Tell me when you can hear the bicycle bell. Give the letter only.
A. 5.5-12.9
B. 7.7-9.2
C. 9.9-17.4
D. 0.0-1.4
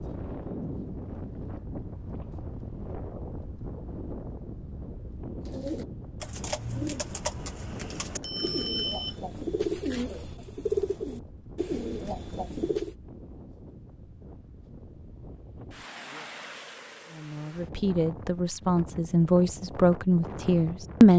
B.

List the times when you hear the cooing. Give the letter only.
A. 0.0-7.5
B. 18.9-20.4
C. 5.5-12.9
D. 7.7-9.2
C.